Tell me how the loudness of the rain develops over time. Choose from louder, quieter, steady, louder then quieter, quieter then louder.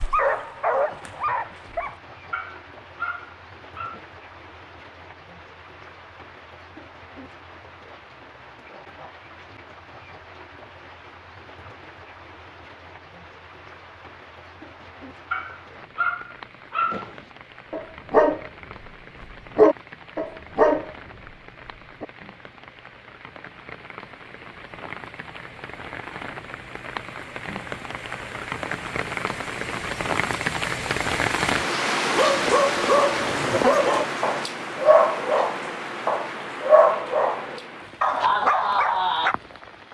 louder.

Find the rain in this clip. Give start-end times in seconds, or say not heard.
0.0-39.9.